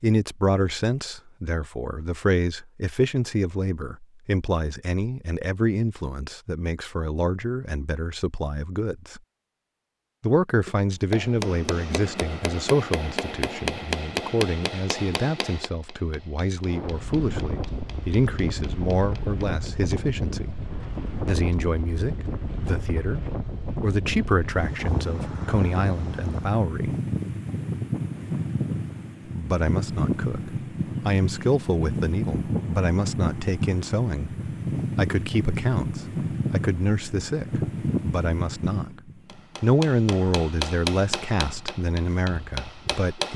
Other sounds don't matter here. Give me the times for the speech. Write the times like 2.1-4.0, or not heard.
0.0-9.2, 10.2-20.6, 21.2-26.9, 29.3-34.4, 35.0-39.0, 39.6-43.3.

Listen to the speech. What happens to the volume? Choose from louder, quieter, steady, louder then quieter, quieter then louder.
steady.